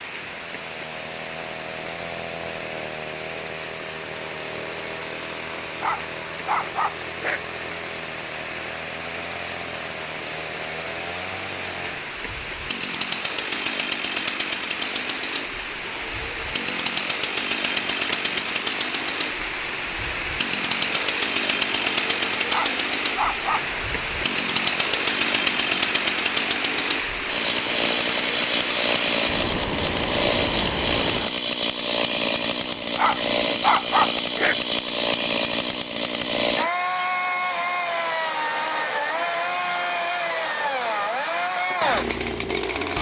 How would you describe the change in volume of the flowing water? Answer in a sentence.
The volume of the flowing water goes up.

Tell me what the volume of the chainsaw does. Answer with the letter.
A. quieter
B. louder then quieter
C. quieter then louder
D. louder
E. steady
D.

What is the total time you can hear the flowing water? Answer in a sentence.
The flowing water can be heard for 31 seconds in total.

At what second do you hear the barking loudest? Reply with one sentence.
The loudest moment of the barking is at 34 seconds.